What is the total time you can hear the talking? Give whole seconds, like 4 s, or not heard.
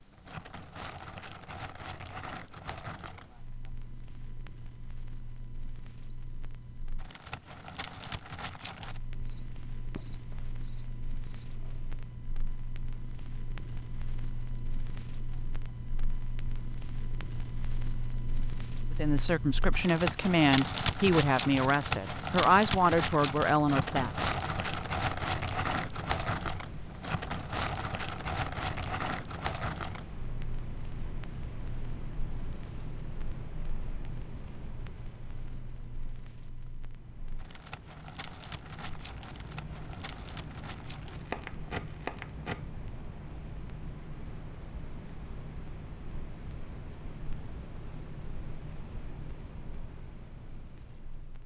5 s.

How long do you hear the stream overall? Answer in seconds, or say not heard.
not heard.